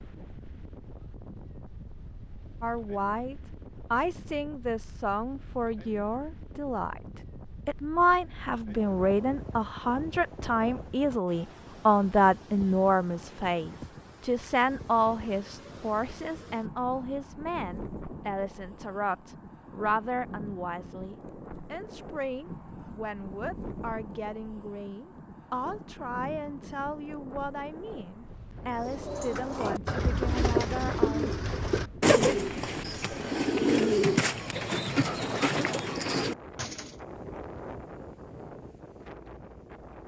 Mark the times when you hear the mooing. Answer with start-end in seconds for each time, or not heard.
not heard.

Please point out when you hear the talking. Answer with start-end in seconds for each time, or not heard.
2.6-31.4.